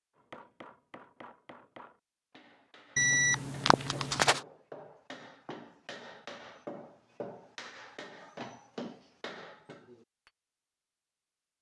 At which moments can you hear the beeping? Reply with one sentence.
You can hear the beeping from 3.0 to 4.4 s.